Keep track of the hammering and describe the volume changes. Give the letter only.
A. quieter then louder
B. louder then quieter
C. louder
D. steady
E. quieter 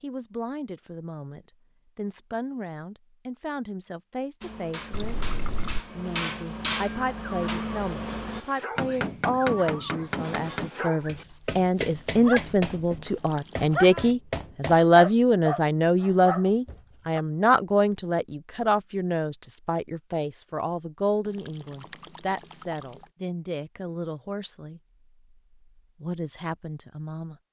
D.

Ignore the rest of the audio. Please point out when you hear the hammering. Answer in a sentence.
You can hear the hammering from 4.4 to 14.8 s.